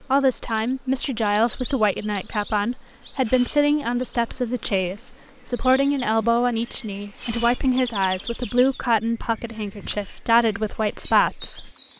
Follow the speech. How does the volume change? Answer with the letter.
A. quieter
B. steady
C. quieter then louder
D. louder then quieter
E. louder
B.